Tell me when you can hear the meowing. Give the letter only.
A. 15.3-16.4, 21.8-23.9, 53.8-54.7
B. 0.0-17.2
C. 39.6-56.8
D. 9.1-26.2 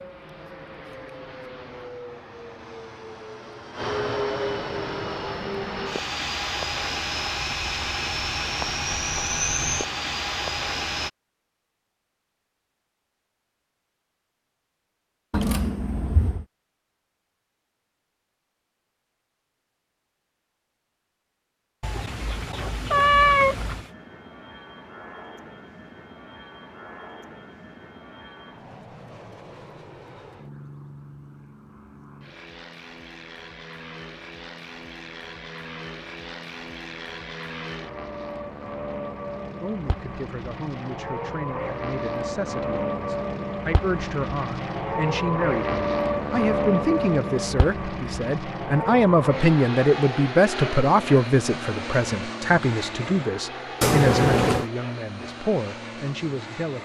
A.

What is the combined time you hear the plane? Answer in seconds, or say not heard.
44 s.